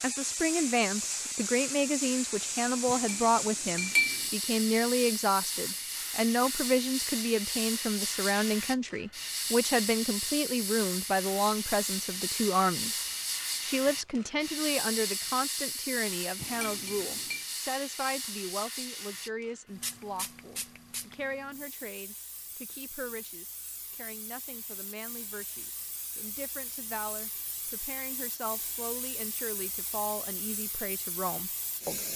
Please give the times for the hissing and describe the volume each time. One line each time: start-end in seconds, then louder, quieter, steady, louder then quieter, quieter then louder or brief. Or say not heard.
0.0-32.1 quieter.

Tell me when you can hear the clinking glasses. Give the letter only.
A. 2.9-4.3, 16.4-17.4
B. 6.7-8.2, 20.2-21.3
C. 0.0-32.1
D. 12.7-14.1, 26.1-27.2
A.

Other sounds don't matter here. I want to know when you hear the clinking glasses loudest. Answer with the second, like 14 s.
4 s.